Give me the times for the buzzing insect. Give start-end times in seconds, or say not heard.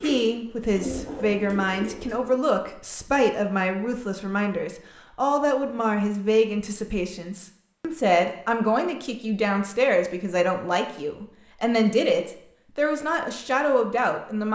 not heard.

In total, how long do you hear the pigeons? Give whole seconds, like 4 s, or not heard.
2 s.